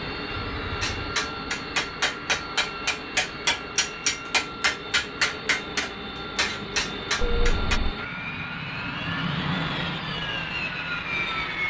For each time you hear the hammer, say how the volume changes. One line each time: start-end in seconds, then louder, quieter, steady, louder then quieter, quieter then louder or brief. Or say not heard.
0.8-7.8 steady.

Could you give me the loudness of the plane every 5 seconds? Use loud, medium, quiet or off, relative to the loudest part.
medium, loud, loud.